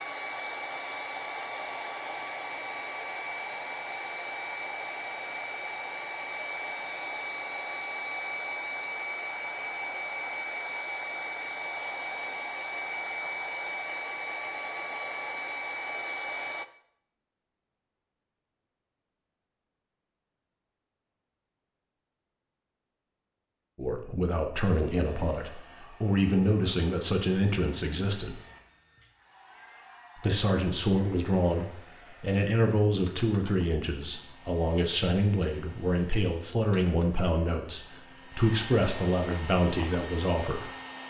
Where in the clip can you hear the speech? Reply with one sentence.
You can hear the speech from 23.8 to 28.4 s and from 30.1 to 40.7 s.